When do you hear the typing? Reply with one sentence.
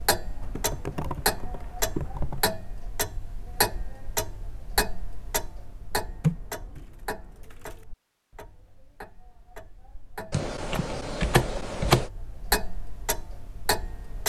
You can hear the typing from 0.4 to 2.5 s, from 6.0 to 7.8 s and from 10.3 to 12.1 s.